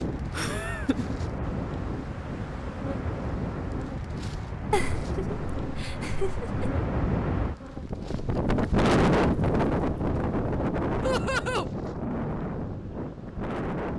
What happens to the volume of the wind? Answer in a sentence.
The loudness of the wind goes up, then down.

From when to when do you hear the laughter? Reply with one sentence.
The laughter can be heard from 0.3 to 1.1 s, from 4.7 to 6.8 s and from 11.0 to 11.7 s.